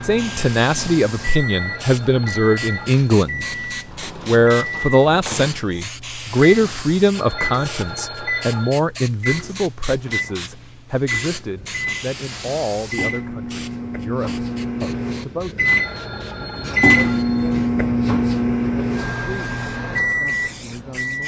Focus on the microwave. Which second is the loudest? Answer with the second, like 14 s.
17 s.